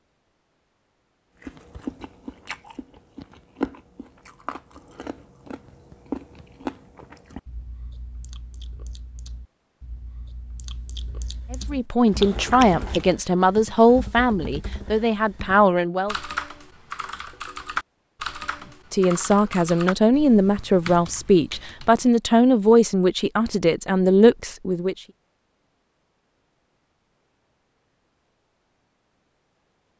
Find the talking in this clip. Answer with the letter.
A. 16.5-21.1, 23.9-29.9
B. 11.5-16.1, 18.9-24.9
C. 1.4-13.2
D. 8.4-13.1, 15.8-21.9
B.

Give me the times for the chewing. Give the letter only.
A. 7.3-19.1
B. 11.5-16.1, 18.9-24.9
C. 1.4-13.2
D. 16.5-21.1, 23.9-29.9
C.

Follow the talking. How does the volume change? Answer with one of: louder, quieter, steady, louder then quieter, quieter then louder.
steady.